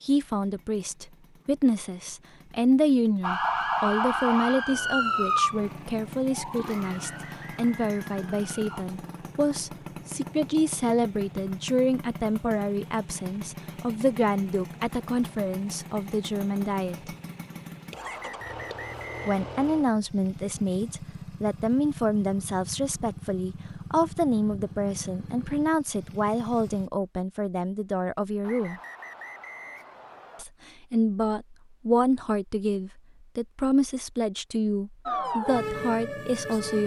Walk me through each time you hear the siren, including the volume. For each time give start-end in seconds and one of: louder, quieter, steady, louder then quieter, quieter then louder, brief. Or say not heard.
3.2-8.8 quieter
35.0-36.8 brief.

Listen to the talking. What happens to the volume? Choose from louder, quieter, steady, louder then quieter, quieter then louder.
steady.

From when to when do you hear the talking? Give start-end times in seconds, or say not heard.
0.0-17.1, 19.2-28.8, 30.4-36.8.